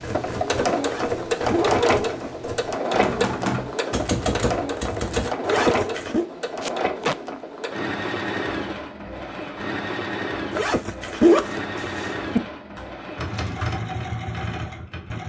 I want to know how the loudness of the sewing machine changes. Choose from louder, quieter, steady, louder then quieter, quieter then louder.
quieter.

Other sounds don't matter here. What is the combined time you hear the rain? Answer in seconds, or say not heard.
not heard.